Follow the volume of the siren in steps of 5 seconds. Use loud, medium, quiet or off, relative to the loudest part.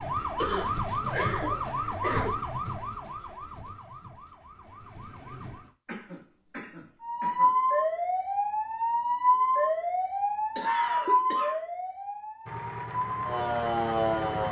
medium, loud, loud.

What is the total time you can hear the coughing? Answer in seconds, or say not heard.
5 s.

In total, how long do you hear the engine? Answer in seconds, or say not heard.
2 s.